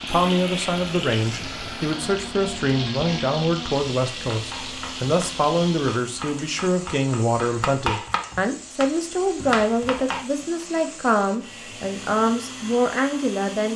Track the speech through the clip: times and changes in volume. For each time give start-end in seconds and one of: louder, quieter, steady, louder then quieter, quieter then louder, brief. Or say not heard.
0.0-13.7 steady.